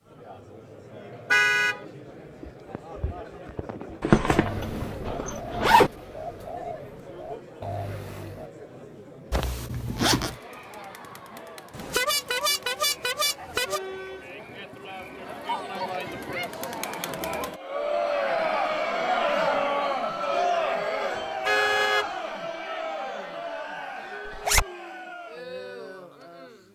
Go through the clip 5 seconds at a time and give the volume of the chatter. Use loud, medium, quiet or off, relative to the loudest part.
quiet, quiet, quiet, loud, loud, quiet.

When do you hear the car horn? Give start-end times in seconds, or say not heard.
1.3-1.8, 11.7-13.8, 21.4-22.1.